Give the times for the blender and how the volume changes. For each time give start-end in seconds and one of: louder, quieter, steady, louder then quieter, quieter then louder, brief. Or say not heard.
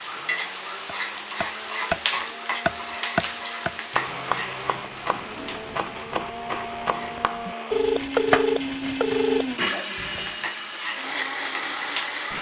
0.0-12.3 louder.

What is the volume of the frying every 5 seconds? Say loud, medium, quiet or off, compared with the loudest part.
loud, medium, loud.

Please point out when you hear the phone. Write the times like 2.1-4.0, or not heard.
7.7-9.6.